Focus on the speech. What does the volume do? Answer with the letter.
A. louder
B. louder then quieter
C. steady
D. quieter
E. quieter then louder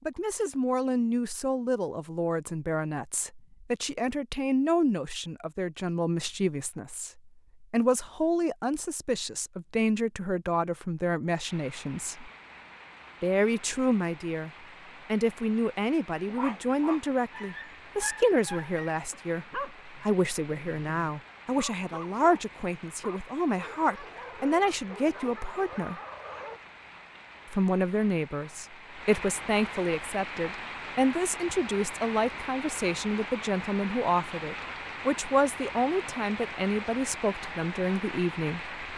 C.